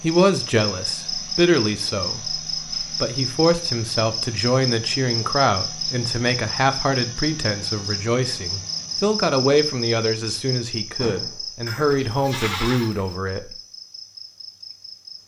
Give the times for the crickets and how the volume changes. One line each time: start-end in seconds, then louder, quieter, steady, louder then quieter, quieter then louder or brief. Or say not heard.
0.0-15.2 quieter.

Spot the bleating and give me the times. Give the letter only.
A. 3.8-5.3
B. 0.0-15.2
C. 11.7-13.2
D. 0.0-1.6
C.